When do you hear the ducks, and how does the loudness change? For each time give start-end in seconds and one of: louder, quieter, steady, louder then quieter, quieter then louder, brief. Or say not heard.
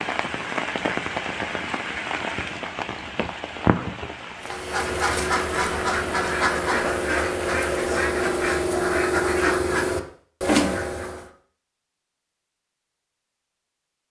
4.4-11.3 steady.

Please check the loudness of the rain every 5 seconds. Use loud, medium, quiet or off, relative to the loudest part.
loud, medium, off.